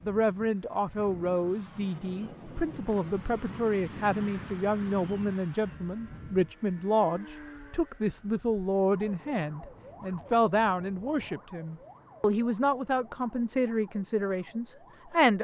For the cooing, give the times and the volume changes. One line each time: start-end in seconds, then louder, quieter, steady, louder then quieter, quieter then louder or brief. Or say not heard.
not heard.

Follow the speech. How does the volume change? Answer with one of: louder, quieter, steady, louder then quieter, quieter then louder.
steady.